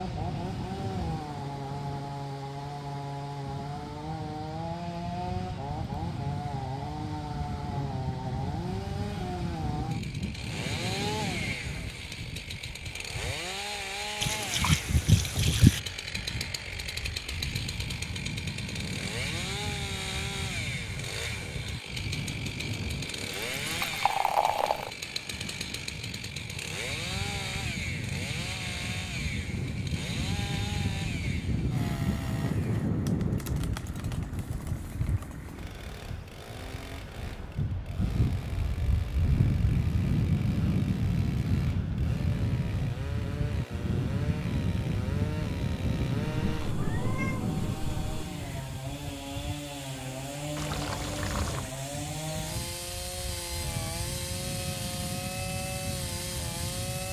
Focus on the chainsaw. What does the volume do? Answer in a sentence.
The volume of the chainsaw goes down, then up.